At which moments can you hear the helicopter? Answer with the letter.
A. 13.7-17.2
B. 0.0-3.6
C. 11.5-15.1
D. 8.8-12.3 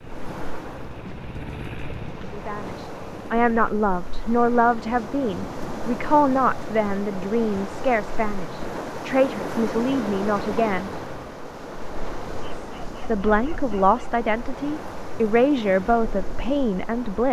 B.